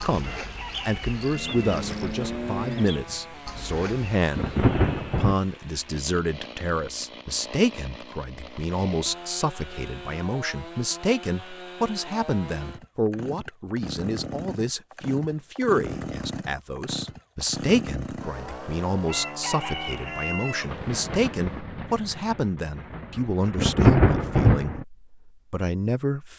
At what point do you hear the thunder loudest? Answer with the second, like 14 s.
24 s.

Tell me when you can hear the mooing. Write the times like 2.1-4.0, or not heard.
0.0-4.2.